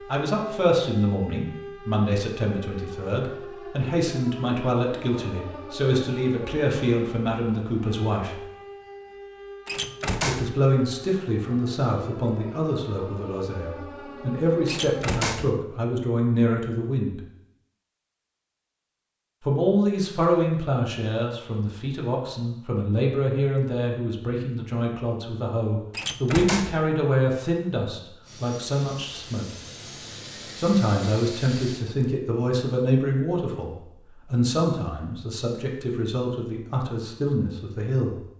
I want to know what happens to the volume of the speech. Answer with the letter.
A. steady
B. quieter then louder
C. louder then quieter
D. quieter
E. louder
A.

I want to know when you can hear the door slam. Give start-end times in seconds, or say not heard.
9.7-10.6, 14.7-15.6, 25.9-26.9.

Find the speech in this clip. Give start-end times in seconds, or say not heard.
0.0-8.4, 10.2-17.2, 19.4-29.4, 30.6-38.2.